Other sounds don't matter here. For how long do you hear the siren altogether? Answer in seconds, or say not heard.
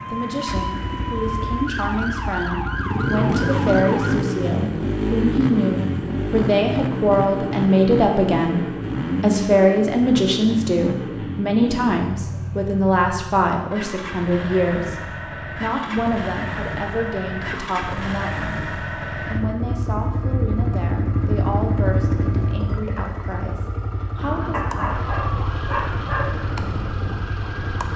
8 s.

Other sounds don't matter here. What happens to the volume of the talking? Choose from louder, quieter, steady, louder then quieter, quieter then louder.
louder then quieter.